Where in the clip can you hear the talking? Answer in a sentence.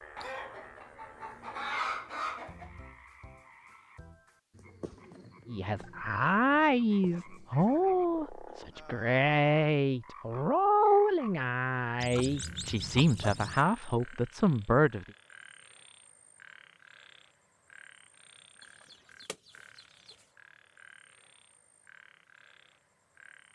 The talking can be heard from 5.5 to 15.1 s.